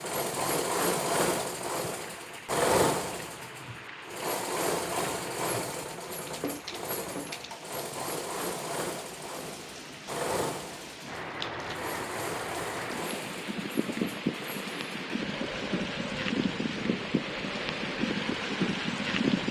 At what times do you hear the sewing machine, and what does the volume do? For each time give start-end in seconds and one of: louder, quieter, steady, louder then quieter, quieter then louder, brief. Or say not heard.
0.0-19.2 quieter.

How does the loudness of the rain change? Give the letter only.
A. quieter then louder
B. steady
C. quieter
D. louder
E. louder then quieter
D.